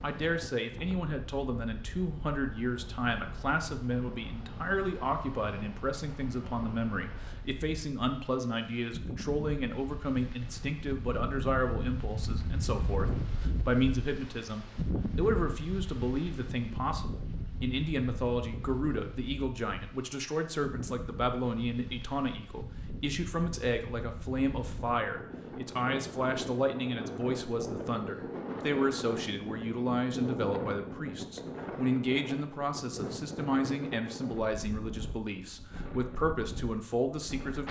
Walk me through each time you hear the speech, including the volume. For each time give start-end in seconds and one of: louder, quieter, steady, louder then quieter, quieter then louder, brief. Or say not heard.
0.0-37.6 steady.